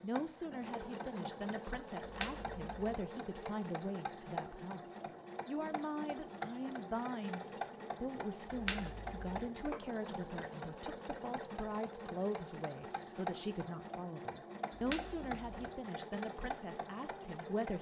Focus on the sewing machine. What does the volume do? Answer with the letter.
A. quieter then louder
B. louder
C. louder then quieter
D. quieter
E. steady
E.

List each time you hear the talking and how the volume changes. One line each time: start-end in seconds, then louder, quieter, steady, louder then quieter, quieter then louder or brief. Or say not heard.
0.0-17.7 steady.